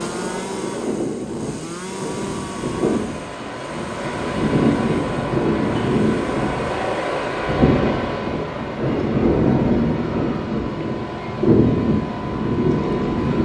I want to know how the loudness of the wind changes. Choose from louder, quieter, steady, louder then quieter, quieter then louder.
louder.